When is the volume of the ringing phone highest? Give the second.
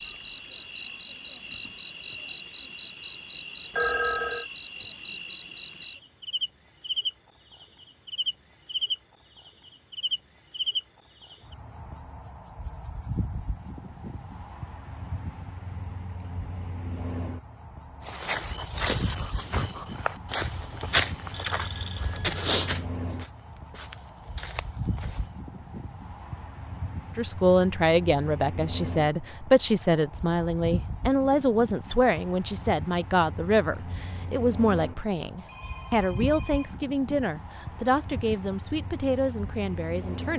4 s.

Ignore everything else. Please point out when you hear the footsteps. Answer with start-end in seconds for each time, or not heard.
18.1-25.3.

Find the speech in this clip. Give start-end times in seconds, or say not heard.
27.1-40.3.